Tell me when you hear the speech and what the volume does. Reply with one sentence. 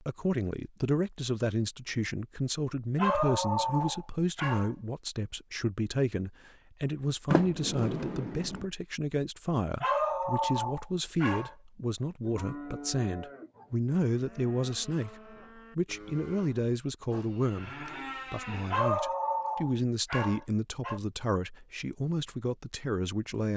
You can hear the speech from 0.0 to 23.5 s, at a steady volume.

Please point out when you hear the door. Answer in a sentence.
The door can be heard from 7.3 to 8.7 s.